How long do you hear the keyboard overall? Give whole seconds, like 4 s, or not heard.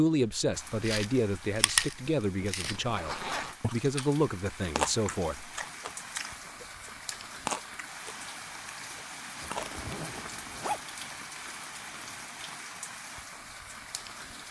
not heard.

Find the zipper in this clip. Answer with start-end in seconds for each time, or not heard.
2.5-3.5, 9.4-10.8.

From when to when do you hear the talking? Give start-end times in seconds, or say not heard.
0.0-5.5.